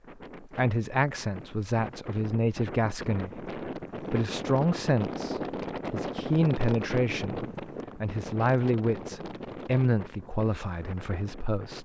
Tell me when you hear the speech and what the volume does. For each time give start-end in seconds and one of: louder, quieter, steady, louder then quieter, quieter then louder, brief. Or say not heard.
0.4-11.7 steady.